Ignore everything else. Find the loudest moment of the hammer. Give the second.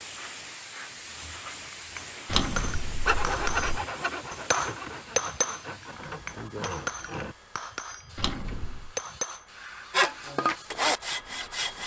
5 s.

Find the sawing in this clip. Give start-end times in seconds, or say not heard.
3.0-7.3, 9.9-11.8.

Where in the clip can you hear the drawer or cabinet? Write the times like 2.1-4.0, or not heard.
2.2-3.8, 8.2-8.9.